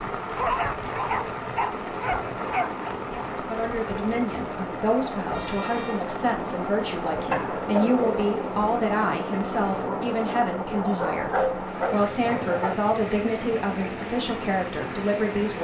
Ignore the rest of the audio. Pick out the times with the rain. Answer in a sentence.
The rain can be heard from 0.0 to 15.6 s.